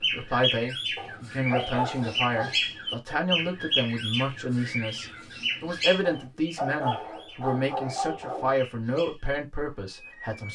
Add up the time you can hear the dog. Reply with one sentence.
The dog can be heard for 4 seconds in total.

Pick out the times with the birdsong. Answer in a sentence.
The birdsong can be heard from 0.0 to 10.5 s.